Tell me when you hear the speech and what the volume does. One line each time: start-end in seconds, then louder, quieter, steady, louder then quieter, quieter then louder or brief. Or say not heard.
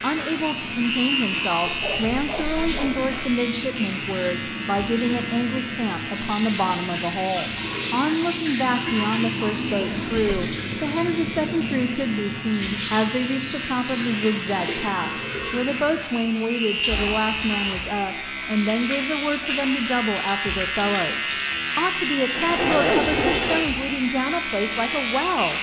0.0-25.5 steady.